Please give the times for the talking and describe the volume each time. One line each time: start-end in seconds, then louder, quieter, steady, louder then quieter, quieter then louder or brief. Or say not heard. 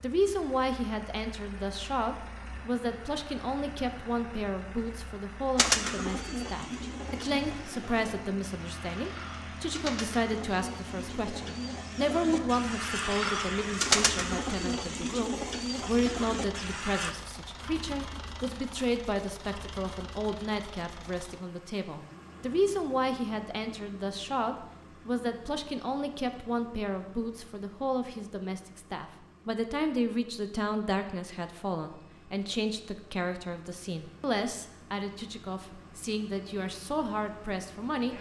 0.0-38.1 steady.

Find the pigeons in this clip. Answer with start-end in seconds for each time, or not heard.
5.5-17.1.